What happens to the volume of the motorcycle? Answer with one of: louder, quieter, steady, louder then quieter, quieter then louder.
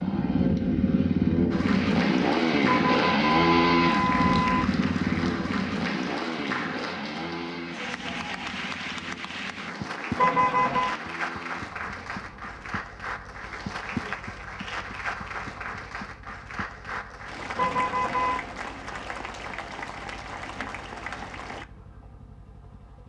quieter.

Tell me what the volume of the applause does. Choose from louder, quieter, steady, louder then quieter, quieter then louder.
steady.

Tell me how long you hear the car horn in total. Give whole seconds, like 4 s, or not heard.
4 s.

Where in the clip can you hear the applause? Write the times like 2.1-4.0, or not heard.
1.5-21.6.